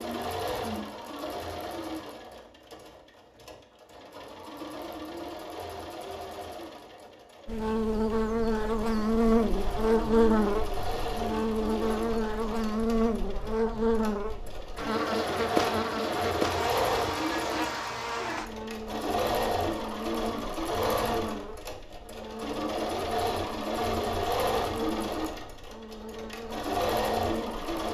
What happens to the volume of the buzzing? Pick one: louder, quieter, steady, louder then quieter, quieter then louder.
quieter.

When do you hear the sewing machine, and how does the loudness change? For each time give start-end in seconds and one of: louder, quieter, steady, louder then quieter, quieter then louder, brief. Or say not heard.
0.0-27.9 louder.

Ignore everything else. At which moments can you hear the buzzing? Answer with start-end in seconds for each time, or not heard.
7.5-27.9.